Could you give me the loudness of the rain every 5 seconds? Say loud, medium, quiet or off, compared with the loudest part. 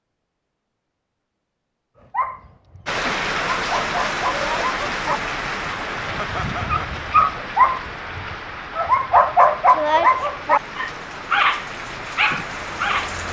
loud, medium, medium.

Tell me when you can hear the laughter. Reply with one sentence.
You can hear the laughter from 6.2 to 7.0 s.